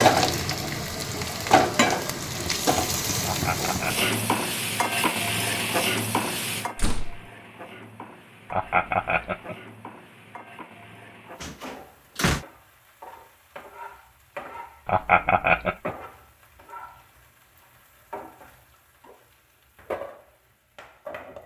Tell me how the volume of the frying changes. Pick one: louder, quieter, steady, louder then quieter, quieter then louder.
quieter.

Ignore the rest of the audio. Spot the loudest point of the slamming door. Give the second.
12 s.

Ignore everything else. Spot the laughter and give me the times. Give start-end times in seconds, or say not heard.
3.2-4.1, 8.5-9.6, 14.8-15.9.